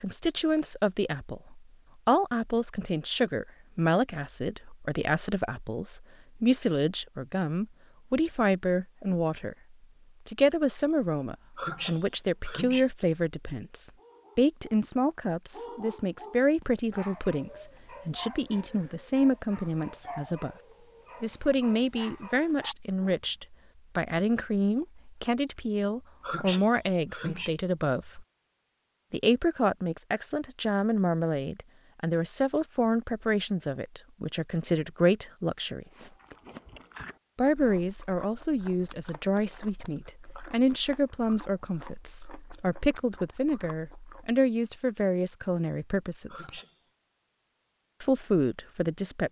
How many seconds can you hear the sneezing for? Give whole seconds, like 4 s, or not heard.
3 s.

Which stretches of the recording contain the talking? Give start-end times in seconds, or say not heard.
0.0-9.6, 10.2-20.6, 21.2-28.2, 29.1-36.1, 37.4-46.6, 48.0-49.2.